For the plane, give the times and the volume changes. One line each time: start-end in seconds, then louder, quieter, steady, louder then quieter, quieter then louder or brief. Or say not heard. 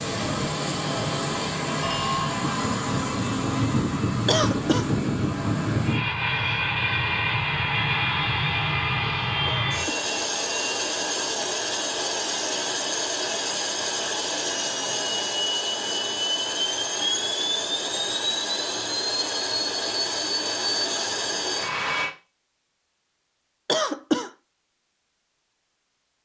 0.0-22.1 steady.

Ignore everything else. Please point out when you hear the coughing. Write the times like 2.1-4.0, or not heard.
4.2-4.8, 9.4-10.1, 23.6-24.3.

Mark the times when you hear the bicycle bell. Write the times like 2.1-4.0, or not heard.
1.8-2.2.